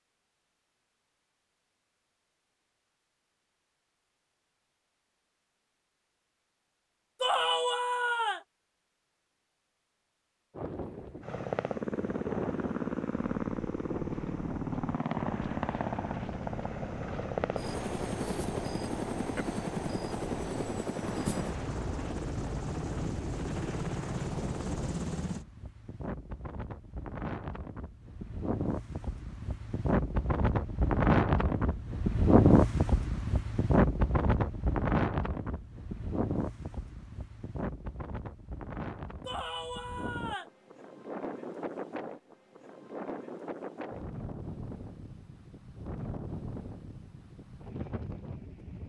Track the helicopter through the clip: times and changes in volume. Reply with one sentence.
The helicopter can be heard from 11.2 to 25.4 s, at a steady volume.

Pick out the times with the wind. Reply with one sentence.
The wind can be heard from 10.5 to 48.8 s.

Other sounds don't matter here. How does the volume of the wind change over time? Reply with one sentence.
The loudness of the wind goes up, then down.